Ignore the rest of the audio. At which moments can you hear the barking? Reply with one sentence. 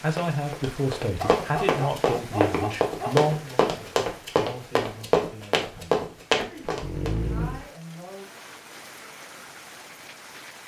The barking can be heard from 1.2 to 3.3 s and from 6.7 to 7.7 s.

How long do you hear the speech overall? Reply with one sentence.
You can hear the speech for 8 seconds altogether.